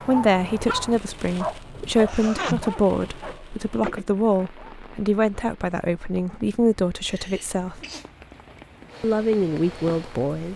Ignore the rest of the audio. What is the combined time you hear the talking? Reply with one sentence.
You can hear the talking for 9 seconds altogether.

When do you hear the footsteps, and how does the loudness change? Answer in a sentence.
You can't hear the footsteps here.